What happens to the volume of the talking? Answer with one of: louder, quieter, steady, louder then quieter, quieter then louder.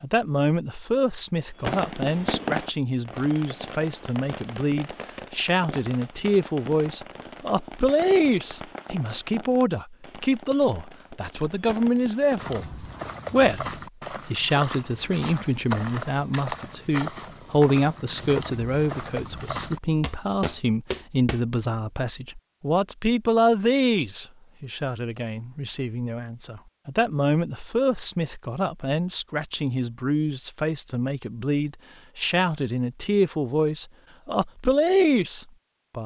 steady.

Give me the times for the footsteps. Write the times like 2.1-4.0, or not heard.
12.3-21.4.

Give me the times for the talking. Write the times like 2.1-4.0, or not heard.
0.0-36.0.